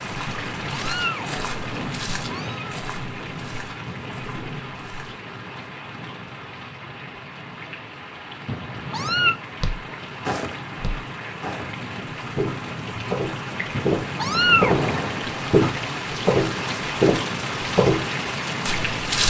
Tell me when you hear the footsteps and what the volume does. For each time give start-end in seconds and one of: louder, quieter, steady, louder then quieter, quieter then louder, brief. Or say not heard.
0.0-5.2 quieter
9.6-19.2 louder.